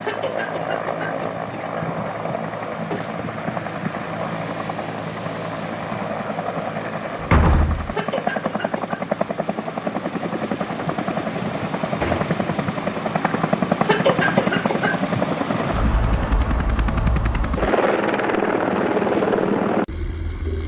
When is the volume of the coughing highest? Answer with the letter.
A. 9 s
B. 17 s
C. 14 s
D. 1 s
C.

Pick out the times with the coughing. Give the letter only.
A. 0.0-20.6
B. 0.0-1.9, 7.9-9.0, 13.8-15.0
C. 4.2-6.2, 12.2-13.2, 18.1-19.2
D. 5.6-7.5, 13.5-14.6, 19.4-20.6
B.